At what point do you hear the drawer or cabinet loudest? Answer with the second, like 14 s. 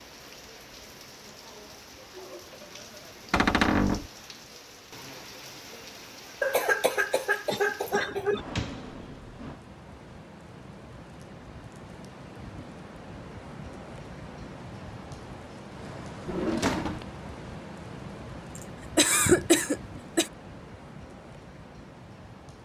4 s.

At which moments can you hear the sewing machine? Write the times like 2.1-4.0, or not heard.
not heard.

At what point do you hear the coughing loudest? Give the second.
19 s.